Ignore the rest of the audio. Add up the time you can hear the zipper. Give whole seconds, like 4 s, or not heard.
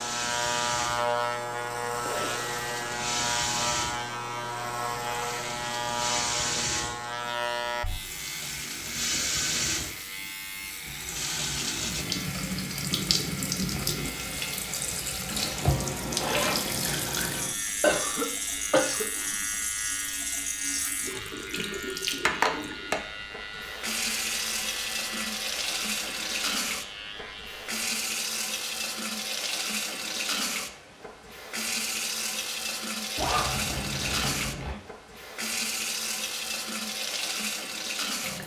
3 s.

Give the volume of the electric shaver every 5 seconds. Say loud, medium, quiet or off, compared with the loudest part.
loud, loud, medium, medium, medium, medium, off, off.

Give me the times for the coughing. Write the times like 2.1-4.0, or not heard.
17.8-19.1.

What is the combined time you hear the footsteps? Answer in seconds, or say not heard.
not heard.